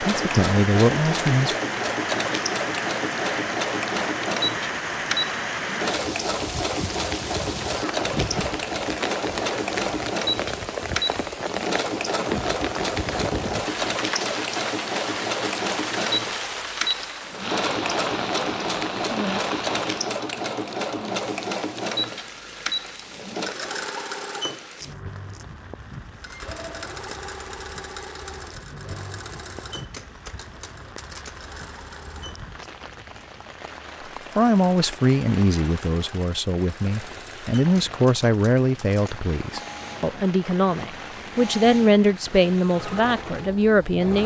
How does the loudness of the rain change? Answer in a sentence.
The loudness of the rain goes down.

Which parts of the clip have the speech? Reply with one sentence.
The speech can be heard from 0.0 to 1.6 s and from 34.4 to 44.2 s.